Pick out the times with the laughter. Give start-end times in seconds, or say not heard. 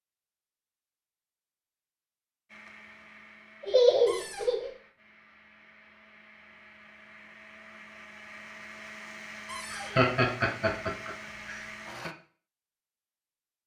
3.6-4.7, 9.7-12.1.